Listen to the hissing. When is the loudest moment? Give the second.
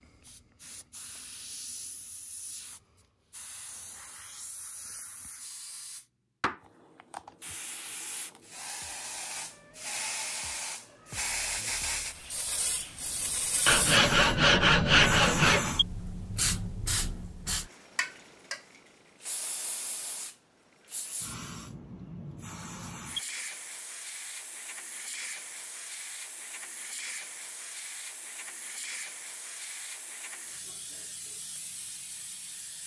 15 s.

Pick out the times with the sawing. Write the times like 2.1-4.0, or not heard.
13.7-15.8.